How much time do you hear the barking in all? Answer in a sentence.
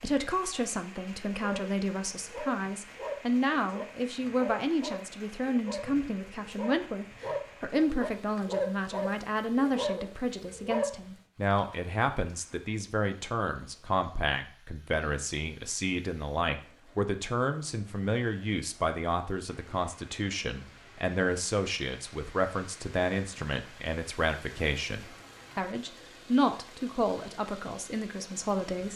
You can hear the barking for 10 seconds altogether.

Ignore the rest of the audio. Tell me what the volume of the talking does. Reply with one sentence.
The loudness of the talking stays about the same.